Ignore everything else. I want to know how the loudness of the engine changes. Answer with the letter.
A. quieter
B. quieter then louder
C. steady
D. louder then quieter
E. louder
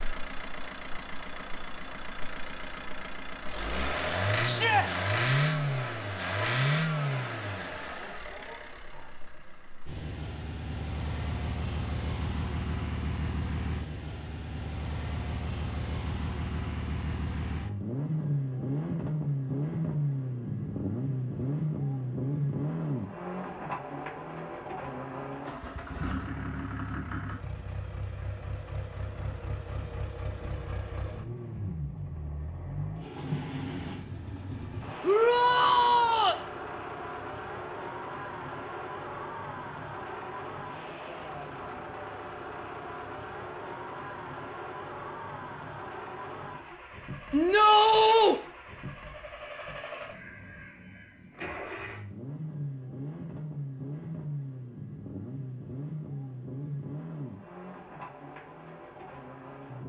A.